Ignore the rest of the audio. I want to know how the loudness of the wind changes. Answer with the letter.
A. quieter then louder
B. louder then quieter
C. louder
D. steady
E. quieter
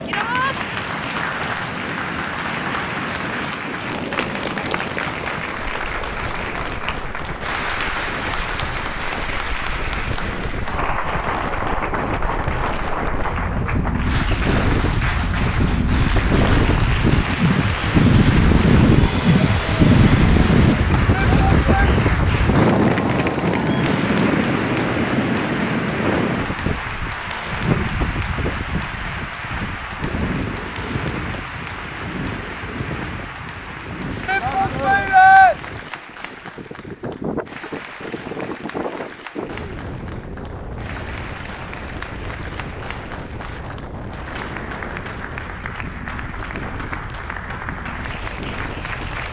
B.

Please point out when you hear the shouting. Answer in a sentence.
The shouting can be heard from 0.1 to 0.6 s, from 21.1 to 21.9 s and from 34.2 to 35.5 s.